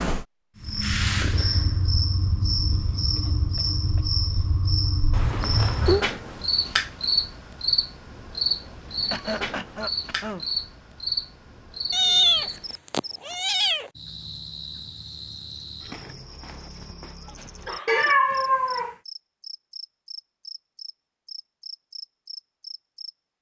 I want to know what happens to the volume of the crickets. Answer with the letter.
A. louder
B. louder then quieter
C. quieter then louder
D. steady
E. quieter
E.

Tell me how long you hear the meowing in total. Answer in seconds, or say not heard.
4 s.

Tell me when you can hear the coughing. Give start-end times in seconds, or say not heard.
2.7-4.1, 9.1-10.4, 16.4-18.1.